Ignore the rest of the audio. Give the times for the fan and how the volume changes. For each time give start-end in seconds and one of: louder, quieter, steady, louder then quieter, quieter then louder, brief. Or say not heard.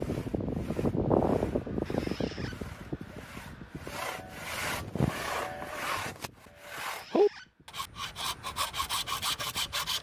0.0-9.9 quieter.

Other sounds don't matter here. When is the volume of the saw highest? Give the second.
7 s.